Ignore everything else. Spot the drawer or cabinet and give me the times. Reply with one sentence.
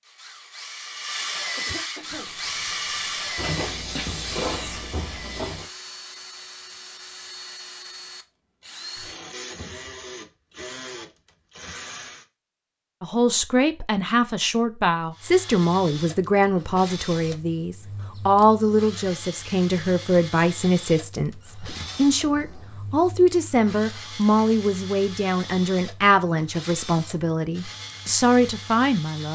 You can hear the drawer or cabinet from 3.4 to 5.7 s.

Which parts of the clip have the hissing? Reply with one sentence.
You can hear the hissing from 2.0 to 5.5 s.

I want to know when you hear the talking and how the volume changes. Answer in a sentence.
The talking can be heard from 13.0 to 29.3 s, at a steady volume.